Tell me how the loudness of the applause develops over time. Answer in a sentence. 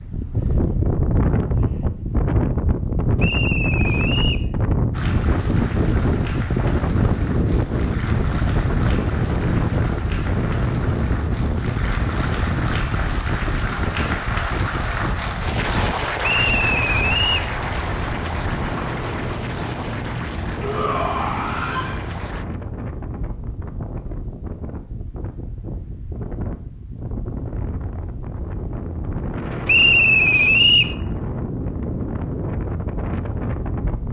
The volume of the applause goes up, then down.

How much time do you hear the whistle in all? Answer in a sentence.
You can hear the whistle for 4 seconds altogether.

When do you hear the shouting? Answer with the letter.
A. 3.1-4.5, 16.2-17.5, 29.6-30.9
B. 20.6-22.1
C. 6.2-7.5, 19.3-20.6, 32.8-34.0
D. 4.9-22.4
B.